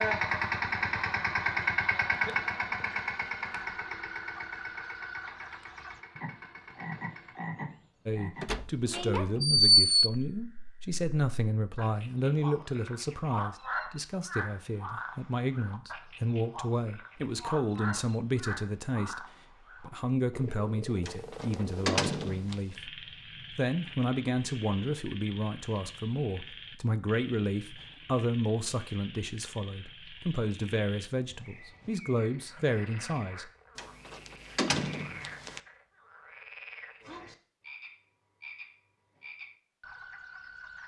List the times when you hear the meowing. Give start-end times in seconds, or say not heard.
not heard.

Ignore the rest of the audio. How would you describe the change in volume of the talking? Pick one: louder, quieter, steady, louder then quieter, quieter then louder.
steady.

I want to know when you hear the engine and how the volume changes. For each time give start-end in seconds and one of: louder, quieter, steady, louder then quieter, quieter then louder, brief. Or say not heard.
0.0-7.5 quieter.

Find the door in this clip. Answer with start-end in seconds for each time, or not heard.
8.4-9.9, 21.1-22.6, 33.8-35.6.